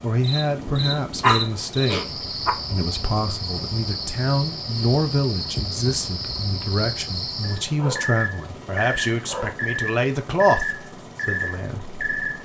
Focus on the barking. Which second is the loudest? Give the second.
1 s.